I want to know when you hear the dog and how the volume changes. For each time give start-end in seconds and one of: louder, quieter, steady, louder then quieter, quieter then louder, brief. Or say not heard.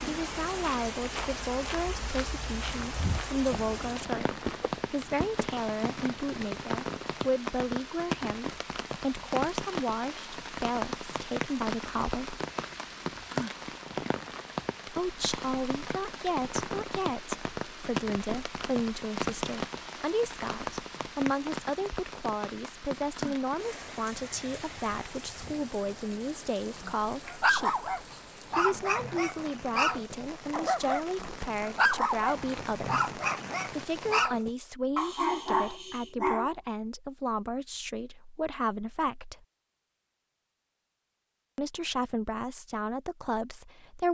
26.8-36.5 steady.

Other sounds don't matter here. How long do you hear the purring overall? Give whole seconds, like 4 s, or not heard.
not heard.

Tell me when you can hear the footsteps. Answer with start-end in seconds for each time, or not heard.
0.5-6.7.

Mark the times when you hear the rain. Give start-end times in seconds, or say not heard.
0.0-34.3.